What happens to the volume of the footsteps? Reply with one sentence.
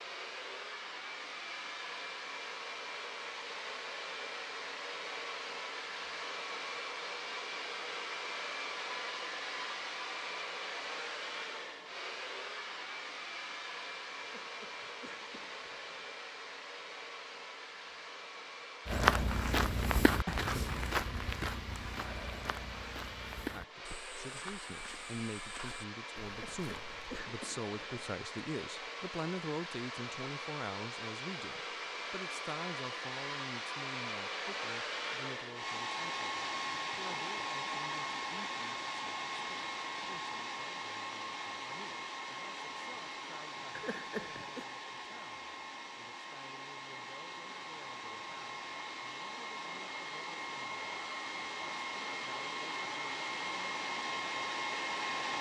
The loudness of the footsteps goes down.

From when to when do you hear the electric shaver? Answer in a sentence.
The electric shaver can't be heard in this clip.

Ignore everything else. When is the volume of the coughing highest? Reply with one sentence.
The loudest moment of the coughing is at 44 seconds.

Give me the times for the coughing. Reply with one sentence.
You can hear the coughing from 14.2 to 16.1 s, from 26.2 to 28.1 s and from 43.8 to 44.6 s.